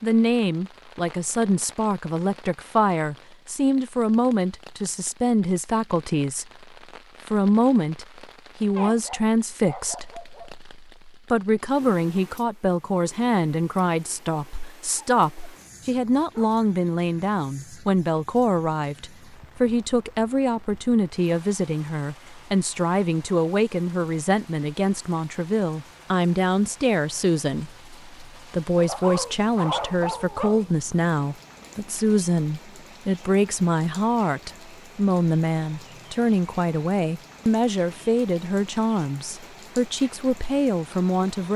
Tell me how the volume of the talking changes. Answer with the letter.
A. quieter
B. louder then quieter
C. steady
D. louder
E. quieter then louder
C.